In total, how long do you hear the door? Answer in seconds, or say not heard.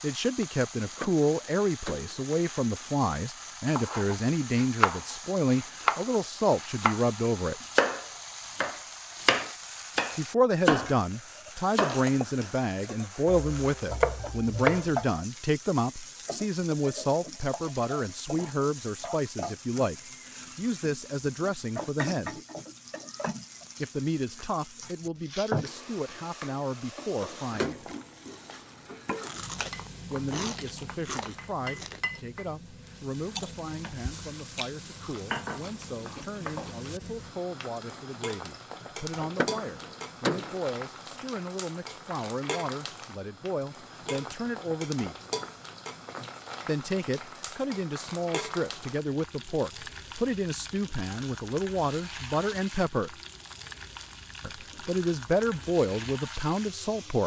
3 s.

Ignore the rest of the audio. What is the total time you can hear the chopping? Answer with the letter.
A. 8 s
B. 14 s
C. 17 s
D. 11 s
D.